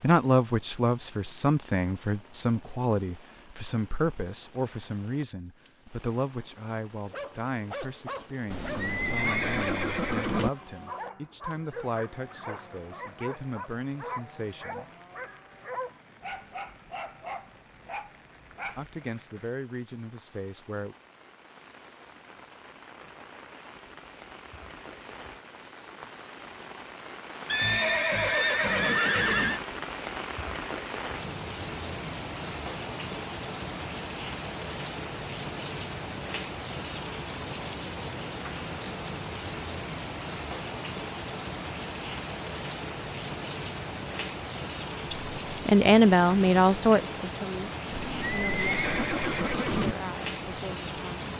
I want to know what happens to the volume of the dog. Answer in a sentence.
The volume of the dog stays about the same.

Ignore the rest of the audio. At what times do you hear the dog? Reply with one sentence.
You can hear the dog from 7.0 to 18.9 s.